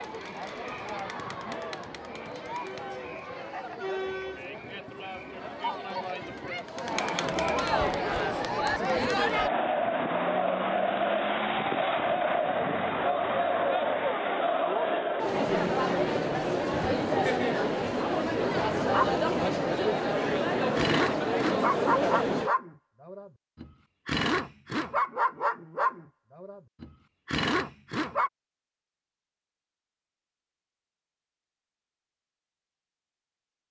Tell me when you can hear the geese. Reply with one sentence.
You can't hear the geese here.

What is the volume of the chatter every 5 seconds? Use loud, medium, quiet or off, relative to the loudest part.
medium, loud, loud, loud, loud, off, off.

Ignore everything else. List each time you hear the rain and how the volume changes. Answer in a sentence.
The rain can't be heard in this clip.